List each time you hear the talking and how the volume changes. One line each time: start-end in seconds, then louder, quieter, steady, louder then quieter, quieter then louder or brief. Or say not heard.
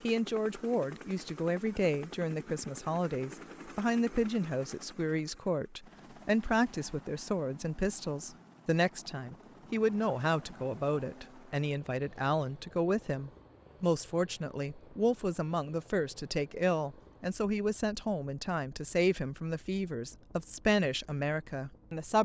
0.0-22.2 steady.